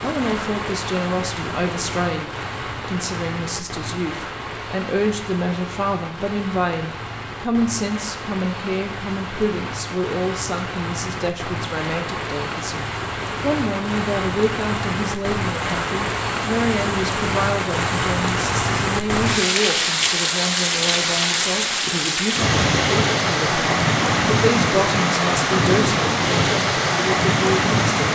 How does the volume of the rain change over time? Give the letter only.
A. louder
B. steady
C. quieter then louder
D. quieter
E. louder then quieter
A.